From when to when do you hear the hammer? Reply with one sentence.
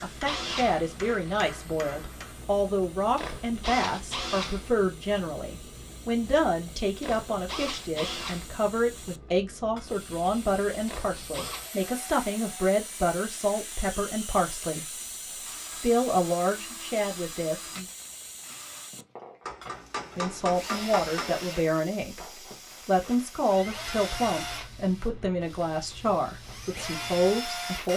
The hammer can be heard from 0.2 to 2.4 s and from 19.4 to 21.4 s.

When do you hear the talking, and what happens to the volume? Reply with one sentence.
You can hear the talking from 0.0 to 14.9 s, at a steady volume; briefly from 15.8 to 17.9 s; and from 20.1 to 27.9 s, at a steady volume.